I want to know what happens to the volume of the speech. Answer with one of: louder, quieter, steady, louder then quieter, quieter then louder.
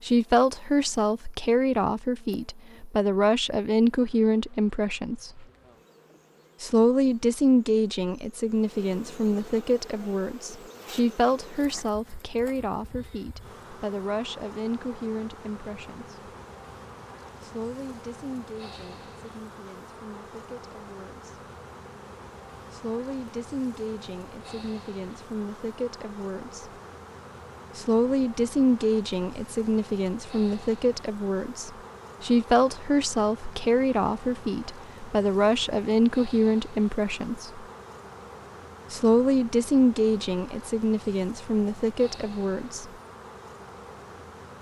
quieter then louder.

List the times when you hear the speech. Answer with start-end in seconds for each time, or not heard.
0.0-5.5, 6.6-16.4, 17.4-21.4, 22.7-26.7, 27.8-37.6, 38.9-42.9.